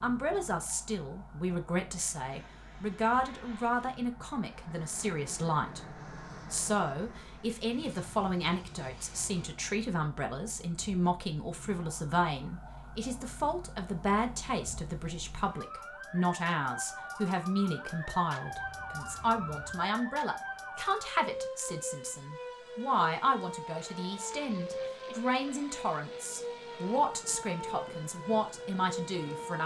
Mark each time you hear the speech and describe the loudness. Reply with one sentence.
You can hear the speech from 0.0 to 29.6 s, at a steady volume.